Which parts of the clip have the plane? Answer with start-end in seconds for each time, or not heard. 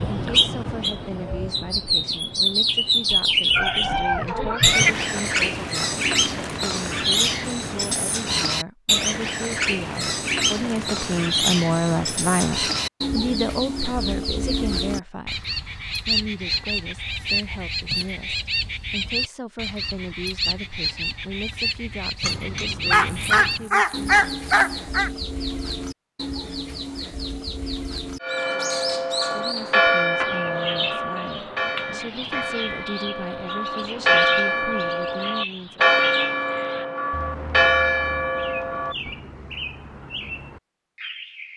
not heard.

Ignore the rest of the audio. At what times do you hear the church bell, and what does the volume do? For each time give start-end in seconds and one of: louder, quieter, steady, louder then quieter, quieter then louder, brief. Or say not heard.
28.2-39.1 quieter then louder.